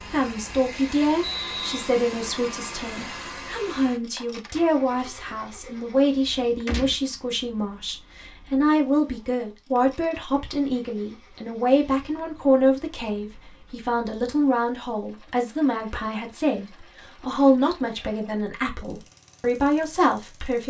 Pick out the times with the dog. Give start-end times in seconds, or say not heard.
not heard.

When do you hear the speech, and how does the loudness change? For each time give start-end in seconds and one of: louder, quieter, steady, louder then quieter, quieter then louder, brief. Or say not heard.
0.0-20.6 steady.